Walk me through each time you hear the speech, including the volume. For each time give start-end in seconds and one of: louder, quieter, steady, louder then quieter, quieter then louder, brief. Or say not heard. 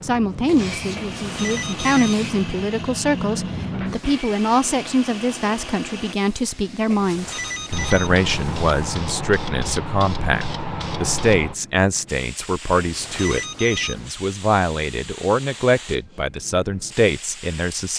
0.0-17.9 steady.